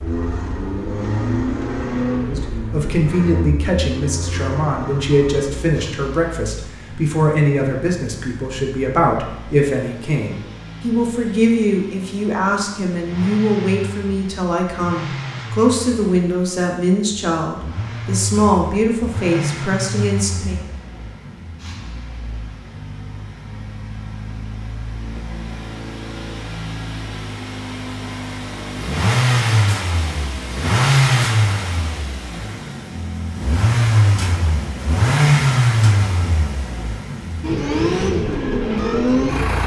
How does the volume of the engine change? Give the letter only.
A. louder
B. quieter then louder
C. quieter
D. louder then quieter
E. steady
B.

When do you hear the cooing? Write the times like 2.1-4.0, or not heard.
not heard.